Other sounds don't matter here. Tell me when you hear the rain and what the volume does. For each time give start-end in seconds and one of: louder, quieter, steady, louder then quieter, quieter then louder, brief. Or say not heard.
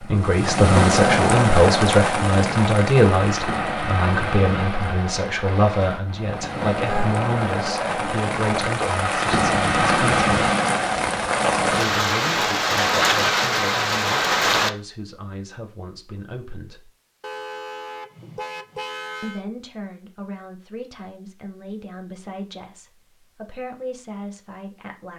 0.0-14.7 quieter then louder.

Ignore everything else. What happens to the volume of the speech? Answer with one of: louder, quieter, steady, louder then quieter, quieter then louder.
quieter.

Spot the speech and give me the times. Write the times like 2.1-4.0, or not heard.
0.0-10.2, 11.7-16.9, 19.2-25.1.